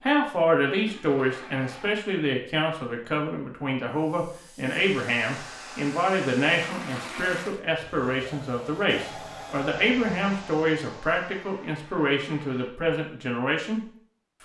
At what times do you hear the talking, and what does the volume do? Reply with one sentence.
You can hear the talking from 0.0 to 13.8 s, at a steady volume.